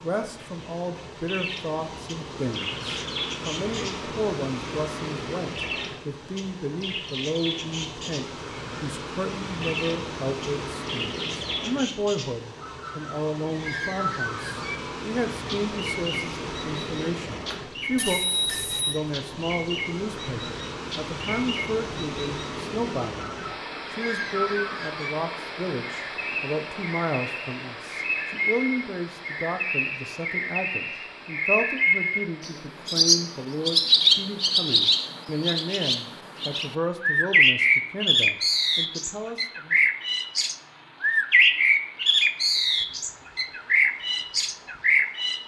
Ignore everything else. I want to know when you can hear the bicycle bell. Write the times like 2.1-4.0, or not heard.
17.3-19.0.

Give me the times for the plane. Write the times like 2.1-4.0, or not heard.
not heard.